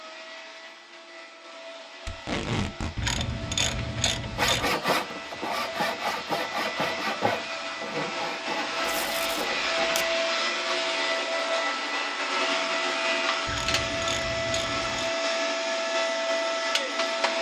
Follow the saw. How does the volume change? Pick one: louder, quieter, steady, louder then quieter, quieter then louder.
quieter.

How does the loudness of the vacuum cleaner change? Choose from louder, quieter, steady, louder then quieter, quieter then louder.
louder.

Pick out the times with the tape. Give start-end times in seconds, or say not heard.
2.0-2.9, 8.8-10.1.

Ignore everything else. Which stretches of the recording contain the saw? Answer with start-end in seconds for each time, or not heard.
4.3-10.1.